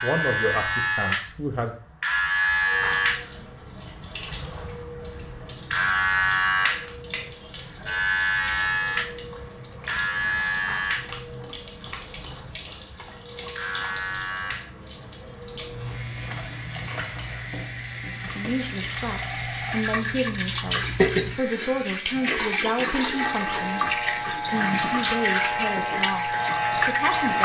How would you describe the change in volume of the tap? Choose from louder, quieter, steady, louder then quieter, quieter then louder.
louder.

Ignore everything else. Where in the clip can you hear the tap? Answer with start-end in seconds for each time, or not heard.
2.6-27.4.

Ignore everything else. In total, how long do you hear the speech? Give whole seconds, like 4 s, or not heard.
11 s.